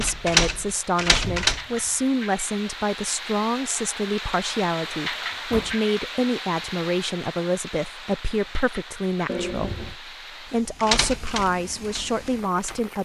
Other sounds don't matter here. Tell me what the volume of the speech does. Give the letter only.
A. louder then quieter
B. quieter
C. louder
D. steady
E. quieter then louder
D.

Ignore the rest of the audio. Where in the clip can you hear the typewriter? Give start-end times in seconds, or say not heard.
0.0-1.6, 10.8-12.9.